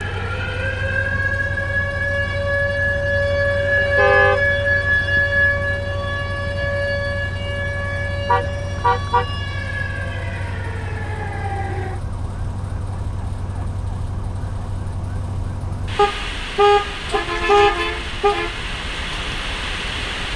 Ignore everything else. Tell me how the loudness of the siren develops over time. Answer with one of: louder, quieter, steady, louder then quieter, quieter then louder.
quieter.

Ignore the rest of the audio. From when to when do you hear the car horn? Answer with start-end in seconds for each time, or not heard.
3.8-4.5, 8.2-9.2, 15.9-18.4.